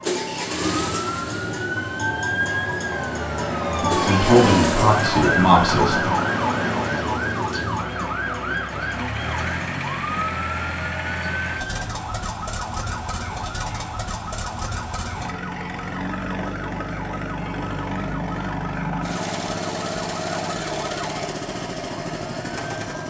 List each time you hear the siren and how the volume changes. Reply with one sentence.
The siren can be heard from 0.0 to 23.0 s, getting quieter.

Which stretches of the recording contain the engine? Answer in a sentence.
You can hear the engine from 0.0 to 23.0 s.